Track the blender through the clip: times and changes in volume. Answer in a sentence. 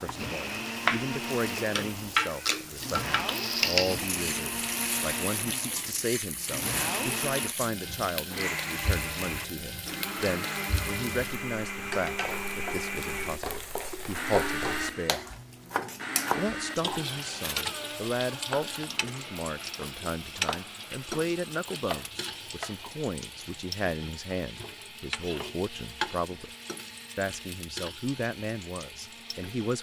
You can hear the blender from 0.0 to 29.7 s, getting quieter.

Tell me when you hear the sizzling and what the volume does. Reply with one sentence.
You can hear the sizzling from 0.0 to 29.7 s, getting quieter.